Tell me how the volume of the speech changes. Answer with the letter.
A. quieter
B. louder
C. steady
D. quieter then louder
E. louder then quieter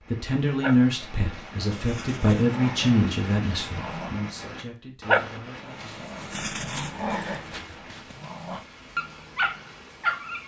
A.